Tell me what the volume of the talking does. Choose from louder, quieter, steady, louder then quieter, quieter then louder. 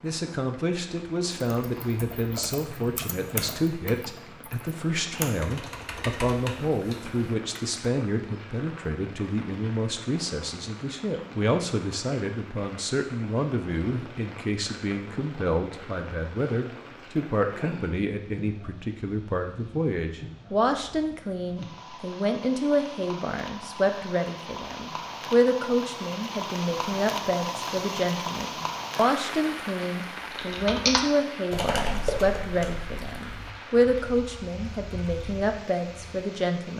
steady.